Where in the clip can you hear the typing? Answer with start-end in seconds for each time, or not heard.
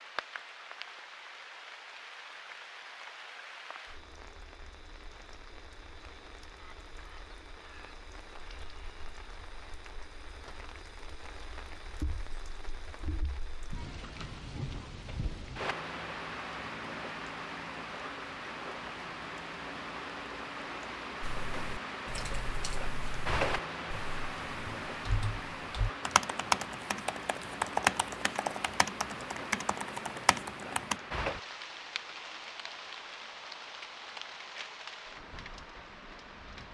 21.2-30.9.